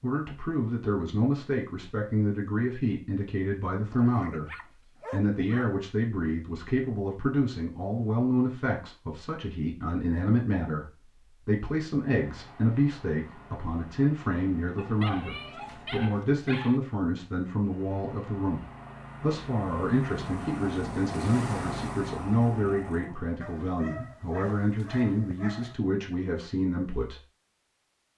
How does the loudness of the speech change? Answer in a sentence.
The volume of the speech stays about the same.